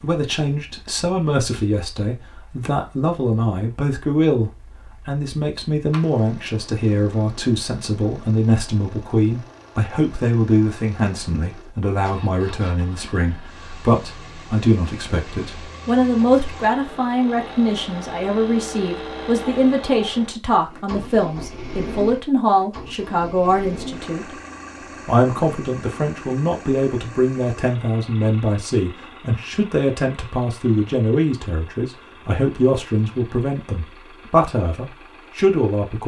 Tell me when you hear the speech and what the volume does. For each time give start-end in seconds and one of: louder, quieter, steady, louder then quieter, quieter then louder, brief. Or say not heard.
0.0-24.4 steady
25.1-36.0 steady.